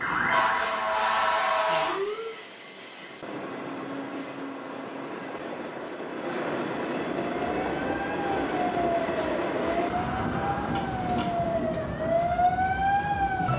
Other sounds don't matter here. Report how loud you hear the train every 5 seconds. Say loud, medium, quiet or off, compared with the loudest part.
medium, loud, loud.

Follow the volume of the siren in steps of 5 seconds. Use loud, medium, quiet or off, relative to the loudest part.
loud, medium, loud.